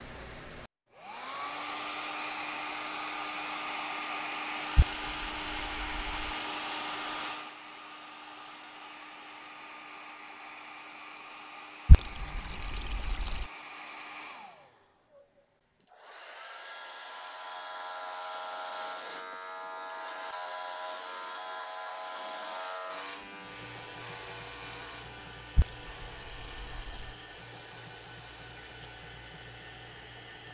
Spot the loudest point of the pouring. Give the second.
12 s.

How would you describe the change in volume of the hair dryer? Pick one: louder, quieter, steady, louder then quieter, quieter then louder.
quieter.